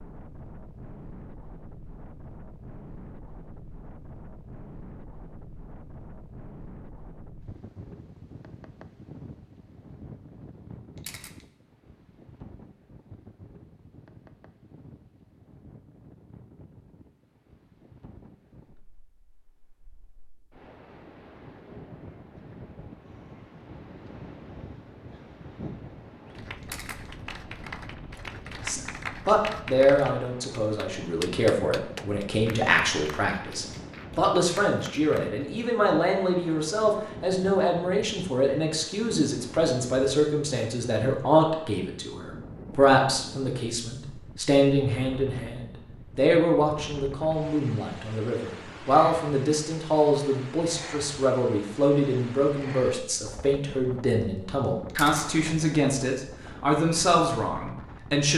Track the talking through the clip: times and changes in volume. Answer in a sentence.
The talking can be heard from 28.6 to 58.3 s, at a steady volume.